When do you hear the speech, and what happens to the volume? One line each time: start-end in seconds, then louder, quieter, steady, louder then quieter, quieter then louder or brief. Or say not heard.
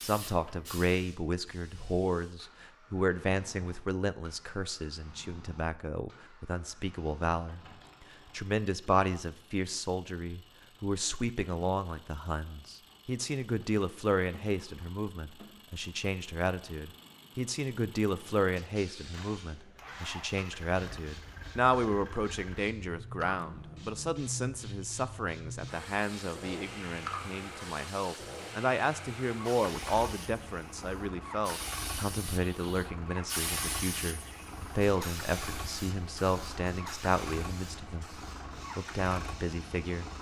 0.0-38.0 steady
38.8-40.1 brief.